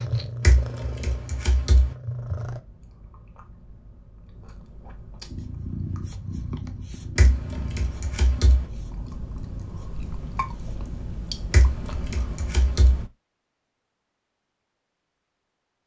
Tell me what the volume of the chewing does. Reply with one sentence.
The volume of the chewing goes up.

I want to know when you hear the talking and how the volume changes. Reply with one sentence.
You can't hear the talking here.